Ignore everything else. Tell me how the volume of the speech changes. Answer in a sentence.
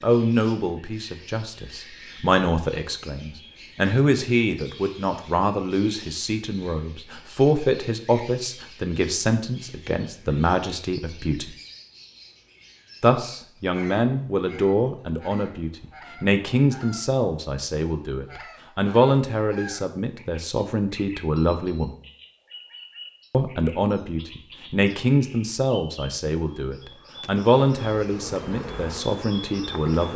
The volume of the speech stays about the same.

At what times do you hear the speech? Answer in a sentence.
The speech can be heard from 0.0 to 11.6 s, from 13.0 to 21.9 s and from 23.3 to 30.1 s.